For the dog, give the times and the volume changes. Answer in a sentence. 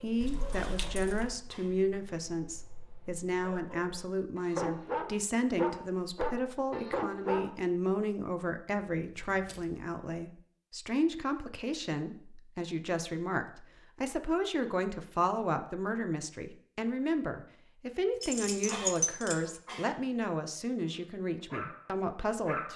The dog can be heard from 0.0 to 7.5 s, getting quieter then louder; and briefly from 20.9 to 22.7 s.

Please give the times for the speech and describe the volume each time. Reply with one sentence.
You can hear the speech from 0.0 to 22.7 s, at a steady volume.